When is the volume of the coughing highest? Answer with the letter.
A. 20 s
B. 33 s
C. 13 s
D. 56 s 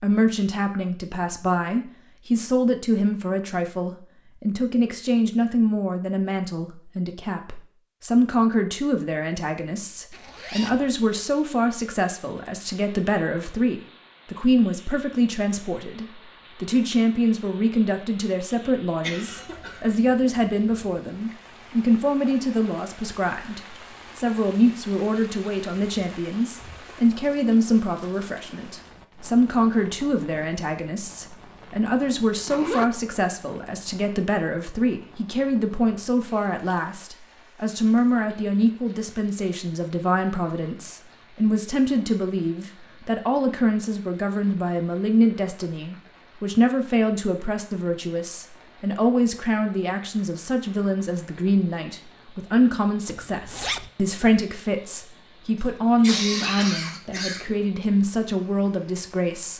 D.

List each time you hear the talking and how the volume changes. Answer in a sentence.
The talking can be heard from 0.0 to 59.5 s, at a steady volume.